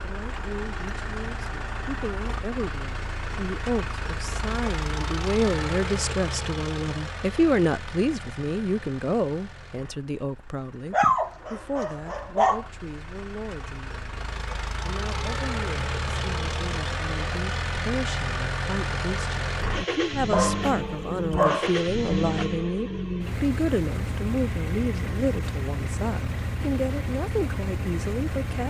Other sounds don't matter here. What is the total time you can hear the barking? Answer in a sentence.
You can hear the barking for 3 seconds altogether.